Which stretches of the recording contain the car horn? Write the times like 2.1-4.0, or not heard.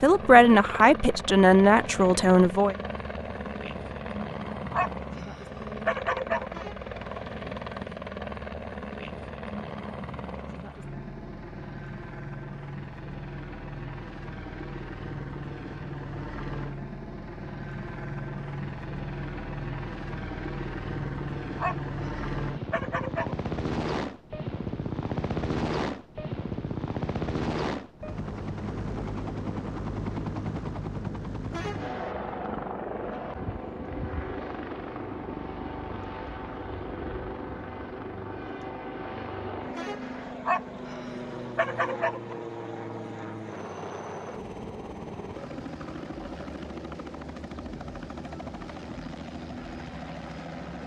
6.5-6.9, 31.5-32.1, 39.7-40.4.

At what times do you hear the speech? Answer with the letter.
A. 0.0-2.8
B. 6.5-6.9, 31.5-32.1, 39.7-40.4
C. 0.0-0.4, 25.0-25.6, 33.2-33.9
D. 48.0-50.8
A.